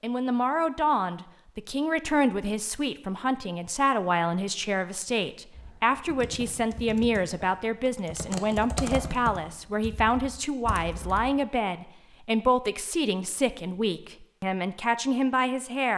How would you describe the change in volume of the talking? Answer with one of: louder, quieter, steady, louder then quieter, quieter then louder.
steady.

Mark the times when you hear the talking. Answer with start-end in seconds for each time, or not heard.
0.0-15.9.